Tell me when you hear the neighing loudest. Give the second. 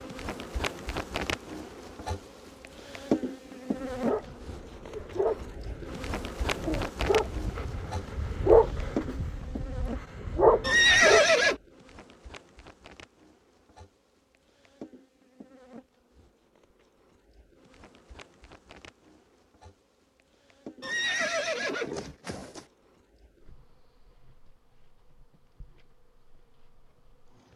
11 s.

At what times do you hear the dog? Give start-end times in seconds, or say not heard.
3.8-11.2.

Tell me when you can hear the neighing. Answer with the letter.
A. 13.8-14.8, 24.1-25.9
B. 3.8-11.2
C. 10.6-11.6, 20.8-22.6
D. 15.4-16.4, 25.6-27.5
C.